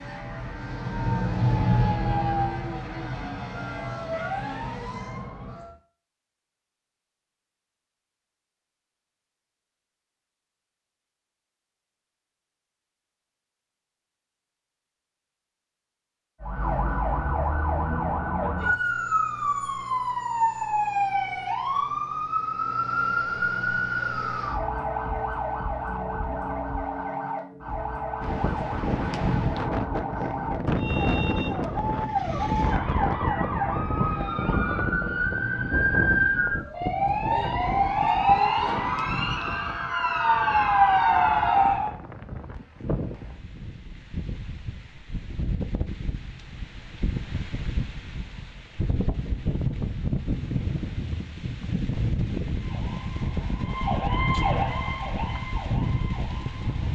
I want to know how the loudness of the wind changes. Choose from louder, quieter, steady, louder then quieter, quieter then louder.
quieter then louder.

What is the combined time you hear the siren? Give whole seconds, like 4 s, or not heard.
36 s.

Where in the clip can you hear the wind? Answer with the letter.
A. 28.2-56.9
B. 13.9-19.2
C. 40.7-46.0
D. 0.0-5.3
A.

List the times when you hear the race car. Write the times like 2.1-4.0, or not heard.
0.0-5.3.